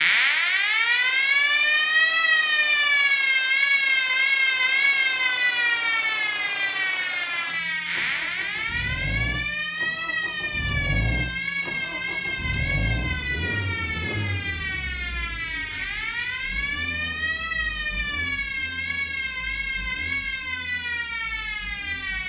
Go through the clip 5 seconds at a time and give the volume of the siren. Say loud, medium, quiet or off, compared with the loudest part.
loud, medium, medium, medium, medium.